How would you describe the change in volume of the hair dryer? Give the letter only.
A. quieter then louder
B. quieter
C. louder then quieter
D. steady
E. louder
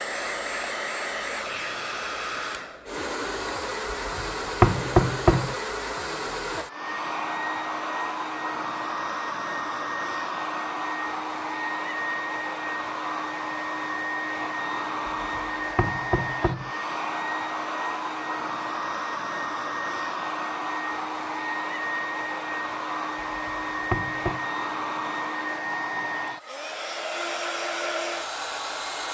D.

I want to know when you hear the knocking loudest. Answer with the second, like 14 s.
5 s.